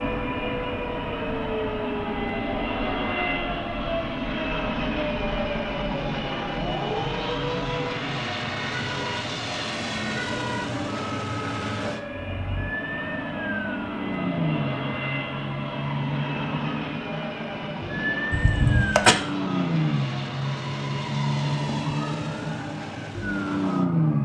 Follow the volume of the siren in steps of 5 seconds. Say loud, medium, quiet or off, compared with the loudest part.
medium, medium, medium, loud, loud.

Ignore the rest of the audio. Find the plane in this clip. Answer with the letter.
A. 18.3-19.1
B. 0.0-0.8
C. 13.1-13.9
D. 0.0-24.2
D.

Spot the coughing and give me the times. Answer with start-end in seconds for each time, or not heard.
18.3-19.1.